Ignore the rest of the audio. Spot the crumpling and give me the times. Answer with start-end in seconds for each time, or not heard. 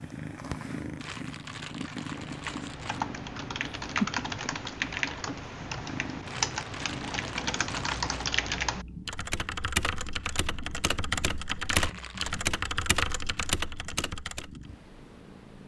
0.9-3.0, 6.2-8.2, 11.7-12.4.